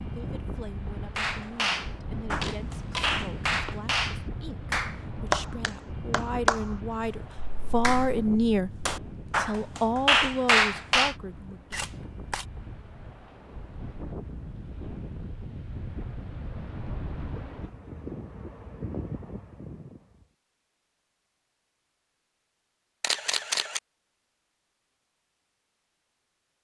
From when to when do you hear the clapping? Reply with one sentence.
The clapping can be heard from 1.1 to 11.2 s.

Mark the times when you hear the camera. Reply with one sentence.
You can hear the camera from 2.4 to 3.8 s, from 11.7 to 12.4 s and from 23.0 to 23.8 s.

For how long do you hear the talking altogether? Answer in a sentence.
You can hear the talking for 12 seconds altogether.